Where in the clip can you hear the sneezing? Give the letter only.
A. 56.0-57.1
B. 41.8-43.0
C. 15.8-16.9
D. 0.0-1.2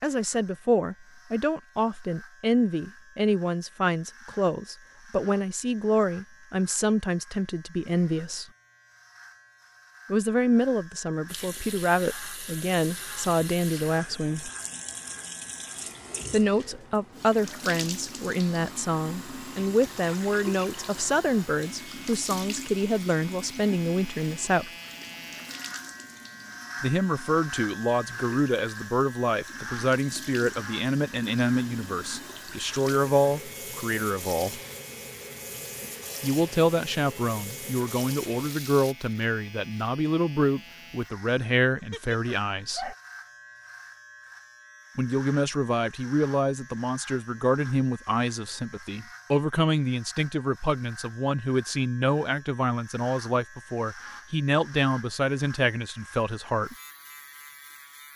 B.